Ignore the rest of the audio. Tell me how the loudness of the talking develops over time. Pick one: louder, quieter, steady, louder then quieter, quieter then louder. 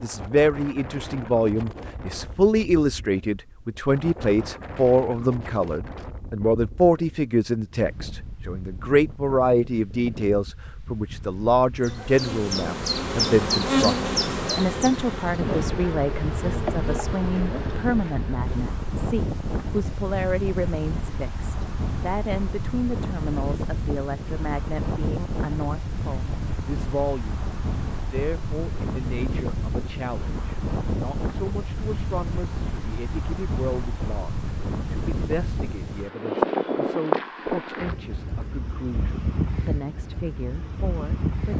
quieter.